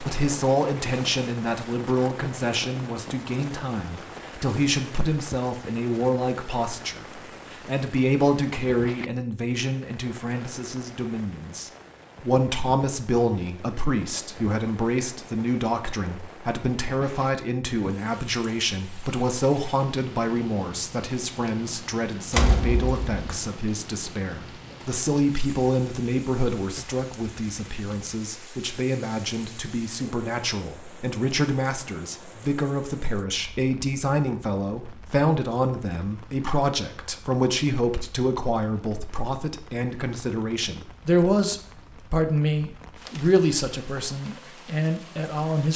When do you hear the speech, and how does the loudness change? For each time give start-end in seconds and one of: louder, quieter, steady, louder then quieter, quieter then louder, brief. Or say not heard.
0.0-45.7 steady.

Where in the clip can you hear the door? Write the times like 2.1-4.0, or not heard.
22.3-23.4.